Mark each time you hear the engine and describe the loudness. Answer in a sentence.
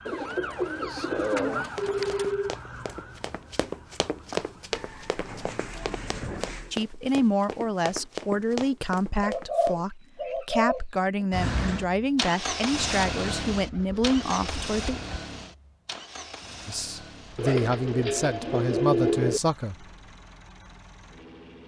You can hear the engine from 11.3 to 21.6 s, getting quieter.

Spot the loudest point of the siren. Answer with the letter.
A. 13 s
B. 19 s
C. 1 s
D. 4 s
C.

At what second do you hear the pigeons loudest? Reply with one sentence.
The loudest moment of the pigeons is at 19 seconds.